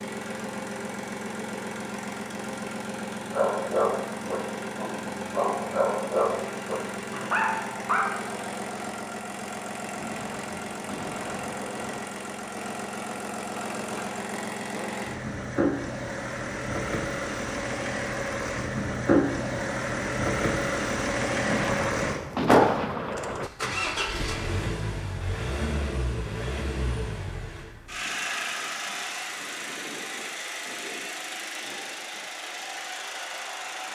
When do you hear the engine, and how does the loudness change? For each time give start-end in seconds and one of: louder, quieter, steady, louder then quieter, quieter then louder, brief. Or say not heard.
0.0-33.9 louder then quieter.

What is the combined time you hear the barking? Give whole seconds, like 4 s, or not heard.
5 s.